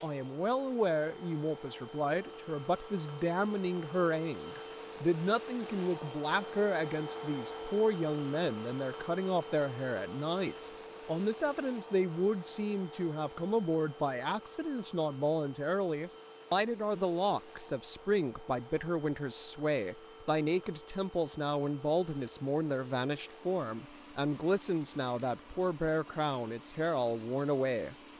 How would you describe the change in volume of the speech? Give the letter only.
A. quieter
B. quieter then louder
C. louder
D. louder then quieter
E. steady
E.